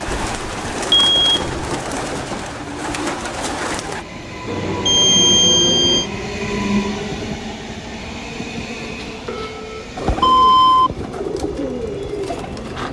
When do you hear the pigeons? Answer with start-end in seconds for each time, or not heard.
0.0-4.0, 9.9-12.8.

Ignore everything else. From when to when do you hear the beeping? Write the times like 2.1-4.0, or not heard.
0.1-1.7, 4.5-6.0, 9.0-10.9.